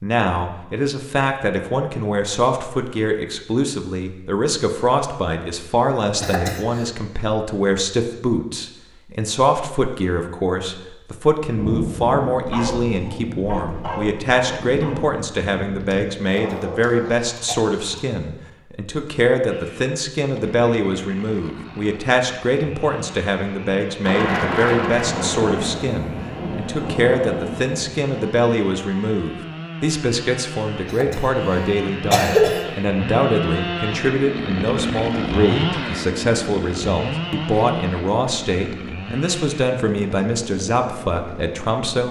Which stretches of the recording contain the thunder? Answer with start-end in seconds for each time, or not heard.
11.6-16.1, 24.0-27.9.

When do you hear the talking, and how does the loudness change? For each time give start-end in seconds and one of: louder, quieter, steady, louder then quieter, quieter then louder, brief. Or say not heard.
0.0-42.0 steady.